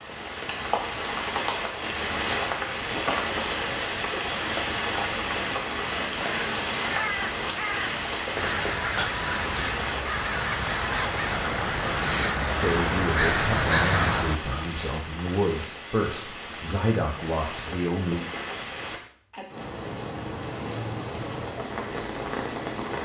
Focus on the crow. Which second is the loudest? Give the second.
14 s.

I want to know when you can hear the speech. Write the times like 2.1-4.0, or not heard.
12.6-18.2.